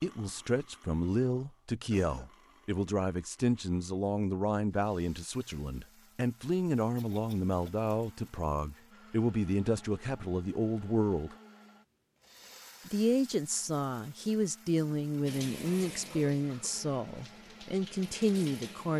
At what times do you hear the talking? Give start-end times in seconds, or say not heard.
0.0-11.3, 12.8-18.9.